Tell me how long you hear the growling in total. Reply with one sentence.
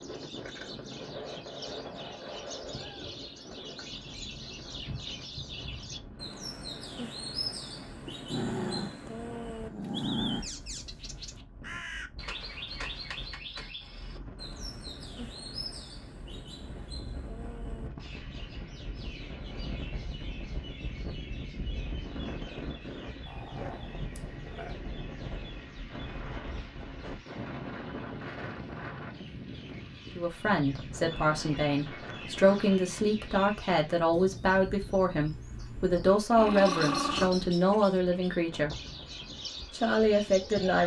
You can hear the growling for 6 seconds altogether.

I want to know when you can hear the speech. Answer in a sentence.
The speech can be heard from 30.1 to 38.8 s and from 39.7 to 40.8 s.